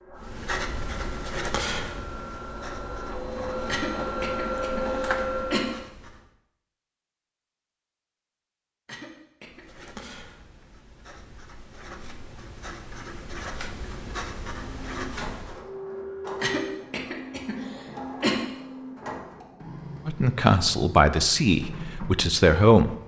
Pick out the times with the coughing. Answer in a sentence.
You can hear the coughing from 3.6 to 5.7 s, from 8.8 to 10.2 s and from 16.4 to 18.4 s.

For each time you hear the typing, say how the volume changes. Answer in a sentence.
You can't hear the typing here.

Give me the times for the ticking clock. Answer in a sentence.
The ticking clock can't be heard in this clip.